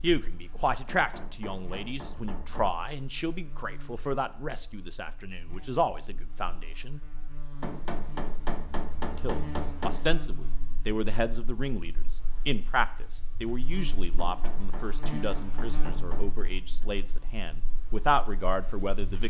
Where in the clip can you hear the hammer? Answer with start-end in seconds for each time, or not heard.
0.8-2.8, 7.6-10.0, 14.2-16.4.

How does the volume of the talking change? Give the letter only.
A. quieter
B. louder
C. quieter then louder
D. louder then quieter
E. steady
E.